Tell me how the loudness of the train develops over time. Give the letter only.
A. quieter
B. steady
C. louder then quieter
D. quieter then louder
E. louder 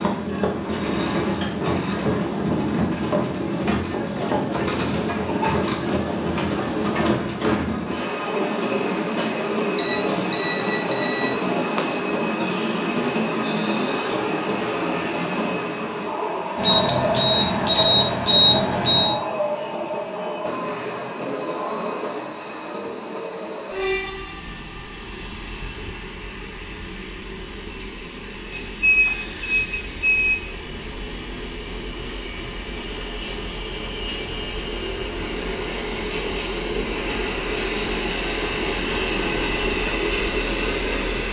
D.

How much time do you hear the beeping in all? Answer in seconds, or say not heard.
6 s.